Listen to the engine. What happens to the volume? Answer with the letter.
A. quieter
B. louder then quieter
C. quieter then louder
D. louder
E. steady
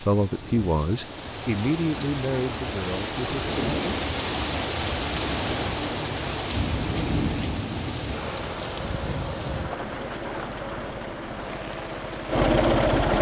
D.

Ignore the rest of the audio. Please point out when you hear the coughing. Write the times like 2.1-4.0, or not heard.
not heard.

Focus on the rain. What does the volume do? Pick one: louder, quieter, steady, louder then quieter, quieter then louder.
louder then quieter.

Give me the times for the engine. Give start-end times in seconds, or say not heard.
8.1-13.1.